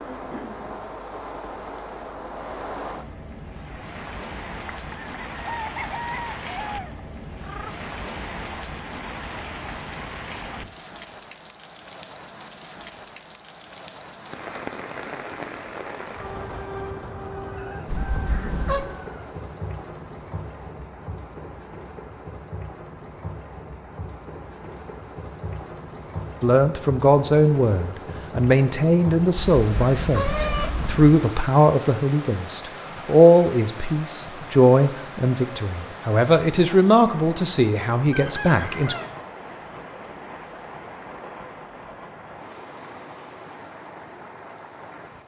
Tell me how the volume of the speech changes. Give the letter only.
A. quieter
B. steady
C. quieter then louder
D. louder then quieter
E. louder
B.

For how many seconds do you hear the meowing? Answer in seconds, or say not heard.
3 s.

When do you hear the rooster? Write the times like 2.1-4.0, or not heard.
4.7-7.8, 17.6-19.4, 38.1-39.2.